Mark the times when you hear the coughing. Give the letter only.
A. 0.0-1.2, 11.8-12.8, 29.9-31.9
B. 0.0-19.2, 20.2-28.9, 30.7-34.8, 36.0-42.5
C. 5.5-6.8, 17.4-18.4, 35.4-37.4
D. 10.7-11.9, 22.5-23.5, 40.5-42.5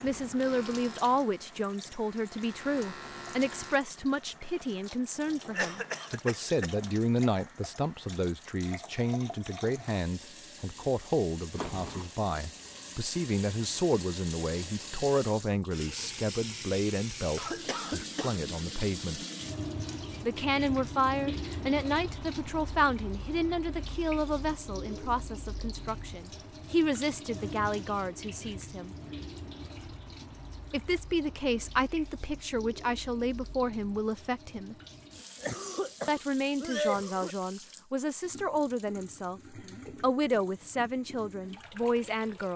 C.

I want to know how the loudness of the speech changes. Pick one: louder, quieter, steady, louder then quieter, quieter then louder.
steady.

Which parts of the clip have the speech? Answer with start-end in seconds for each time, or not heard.
0.0-19.2, 20.2-28.9, 30.7-34.8, 36.0-42.5.